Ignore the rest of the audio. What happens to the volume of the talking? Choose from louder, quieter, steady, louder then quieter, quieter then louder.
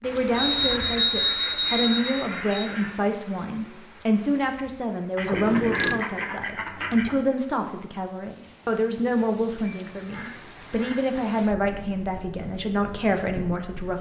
steady.